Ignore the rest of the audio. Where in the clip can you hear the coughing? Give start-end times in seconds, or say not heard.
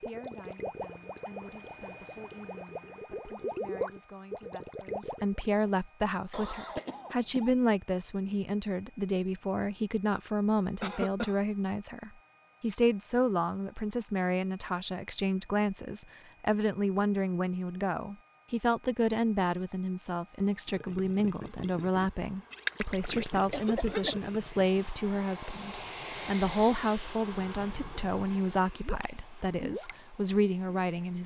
6.3-7.5, 10.8-11.3, 23.5-24.2.